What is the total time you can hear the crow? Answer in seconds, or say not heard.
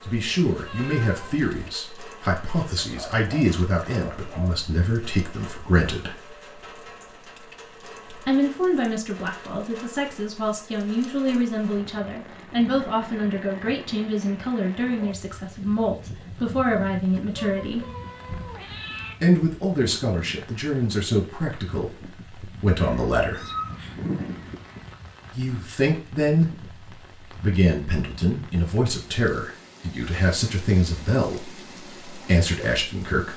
2 s.